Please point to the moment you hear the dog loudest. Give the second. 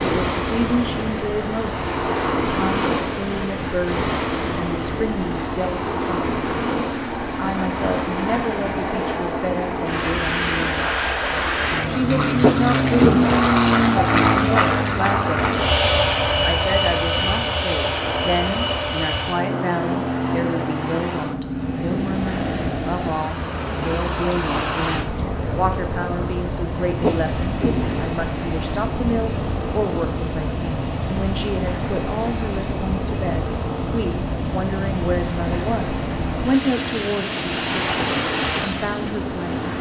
13 s.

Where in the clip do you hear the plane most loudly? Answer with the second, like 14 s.
14 s.